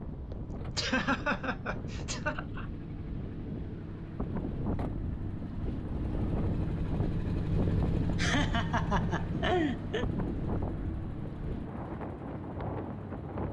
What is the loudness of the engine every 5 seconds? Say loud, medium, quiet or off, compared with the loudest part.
medium, loud, medium.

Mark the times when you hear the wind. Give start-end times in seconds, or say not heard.
0.0-13.4.